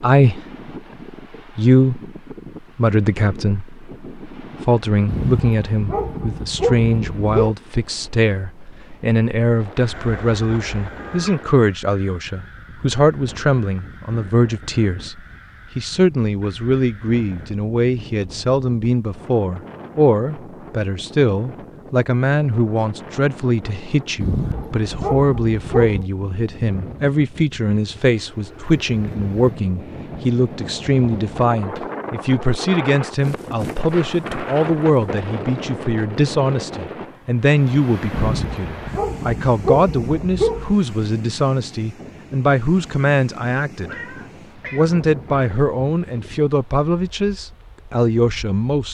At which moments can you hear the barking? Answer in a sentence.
The barking can be heard from 5.0 to 7.5 s, from 24.2 to 26.1 s and from 38.1 to 40.8 s.